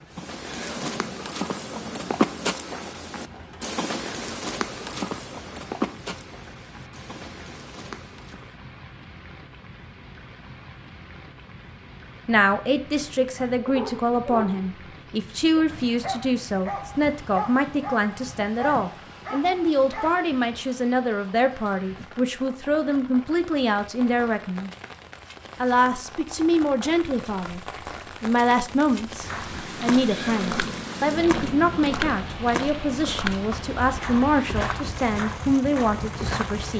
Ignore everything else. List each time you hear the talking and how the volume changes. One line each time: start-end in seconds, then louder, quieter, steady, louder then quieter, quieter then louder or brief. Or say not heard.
12.2-24.7 steady
25.6-27.6 brief
28.2-36.7 steady.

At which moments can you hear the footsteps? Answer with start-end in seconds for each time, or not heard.
0.1-8.5, 29.1-36.7.